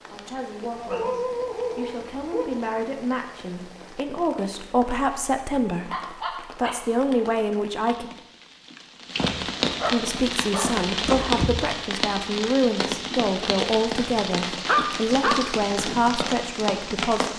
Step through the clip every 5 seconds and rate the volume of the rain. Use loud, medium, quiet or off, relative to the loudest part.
quiet, medium, loud, loud.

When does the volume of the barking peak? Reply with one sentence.
The loudest moment of the barking is at 15 seconds.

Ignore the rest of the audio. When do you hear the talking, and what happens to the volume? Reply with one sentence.
The talking can be heard from 0.0 to 8.1 s, getting louder; and from 9.9 to 17.3 s, at a steady volume.